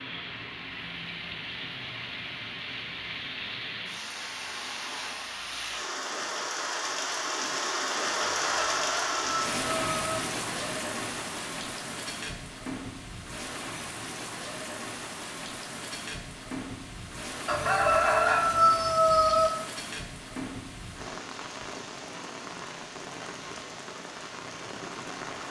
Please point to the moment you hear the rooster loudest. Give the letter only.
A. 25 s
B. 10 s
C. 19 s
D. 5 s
C.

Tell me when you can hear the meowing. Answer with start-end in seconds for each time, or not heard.
not heard.